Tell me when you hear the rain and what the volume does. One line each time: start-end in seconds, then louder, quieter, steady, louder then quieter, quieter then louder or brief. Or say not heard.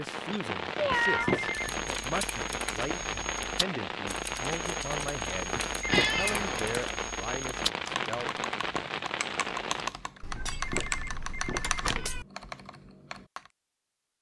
0.0-9.9 steady.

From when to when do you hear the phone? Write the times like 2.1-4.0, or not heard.
0.9-1.8, 5.5-6.3, 10.3-12.1.